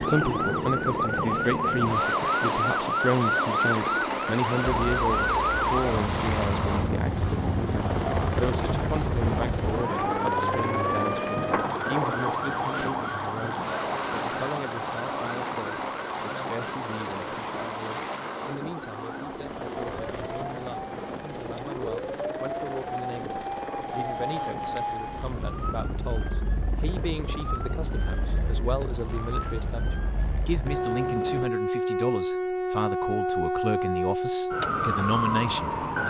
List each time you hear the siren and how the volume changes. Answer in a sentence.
The siren can be heard from 0.0 to 36.0 s, getting quieter then louder.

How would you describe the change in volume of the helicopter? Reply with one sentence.
The volume of the helicopter goes down.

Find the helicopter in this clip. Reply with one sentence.
You can hear the helicopter from 0.0 to 31.5 s.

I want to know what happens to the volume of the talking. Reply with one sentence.
The volume of the talking goes down, then up.